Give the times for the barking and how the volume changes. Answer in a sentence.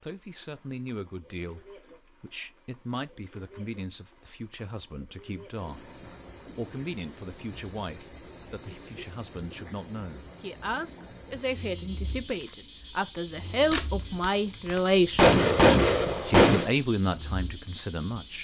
You can't hear the barking here.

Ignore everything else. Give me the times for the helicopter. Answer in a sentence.
The helicopter can't be heard in this clip.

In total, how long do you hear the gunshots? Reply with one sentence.
You can hear the gunshots for 3 seconds altogether.